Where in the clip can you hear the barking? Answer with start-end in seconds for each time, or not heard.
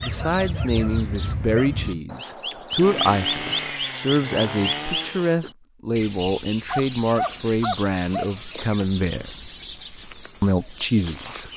0.0-2.0, 6.7-8.3.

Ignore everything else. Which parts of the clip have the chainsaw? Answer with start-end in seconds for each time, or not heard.
2.8-5.3.